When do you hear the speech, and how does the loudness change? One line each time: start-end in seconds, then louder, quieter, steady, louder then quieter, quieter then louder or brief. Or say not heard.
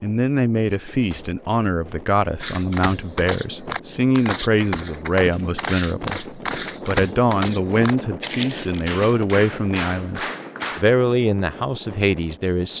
0.0-12.7 steady.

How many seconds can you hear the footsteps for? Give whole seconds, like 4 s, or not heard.
7 s.